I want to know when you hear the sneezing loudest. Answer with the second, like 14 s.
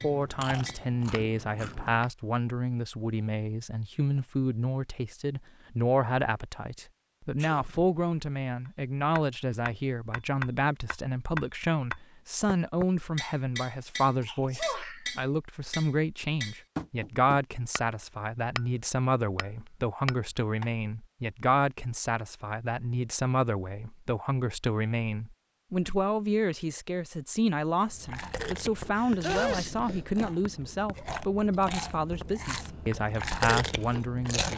29 s.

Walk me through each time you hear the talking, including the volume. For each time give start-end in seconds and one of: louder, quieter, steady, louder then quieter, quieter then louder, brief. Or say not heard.
0.0-34.5 steady.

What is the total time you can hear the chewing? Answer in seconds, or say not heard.
9 s.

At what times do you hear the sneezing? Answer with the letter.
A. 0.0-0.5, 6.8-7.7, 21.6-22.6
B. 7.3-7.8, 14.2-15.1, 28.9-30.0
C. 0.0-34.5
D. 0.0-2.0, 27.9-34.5
B.